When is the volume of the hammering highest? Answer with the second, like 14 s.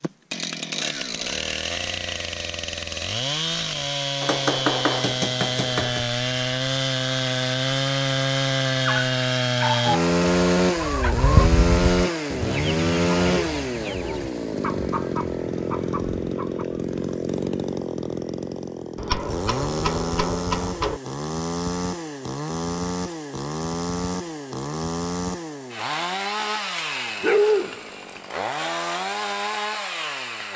5 s.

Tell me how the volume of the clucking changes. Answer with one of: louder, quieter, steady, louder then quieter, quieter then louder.
quieter.